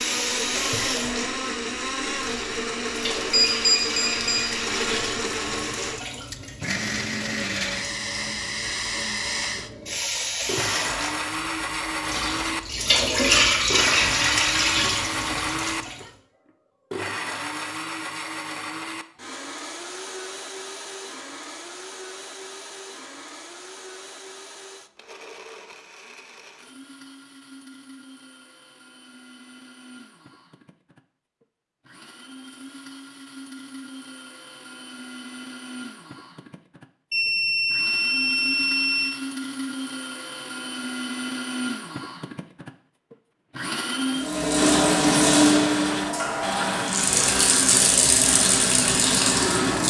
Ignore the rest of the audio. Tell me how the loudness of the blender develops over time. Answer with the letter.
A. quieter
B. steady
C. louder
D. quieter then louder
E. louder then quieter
D.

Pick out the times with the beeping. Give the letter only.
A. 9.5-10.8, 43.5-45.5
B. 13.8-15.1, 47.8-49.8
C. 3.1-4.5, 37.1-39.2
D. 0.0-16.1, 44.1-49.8
C.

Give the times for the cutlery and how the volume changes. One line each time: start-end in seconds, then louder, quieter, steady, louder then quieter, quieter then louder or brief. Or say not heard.
not heard.